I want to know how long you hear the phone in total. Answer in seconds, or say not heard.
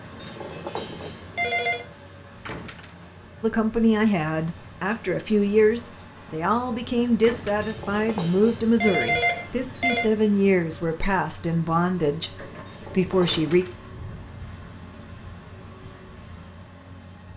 5 s.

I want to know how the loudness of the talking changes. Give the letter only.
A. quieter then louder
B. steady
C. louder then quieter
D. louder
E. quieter
B.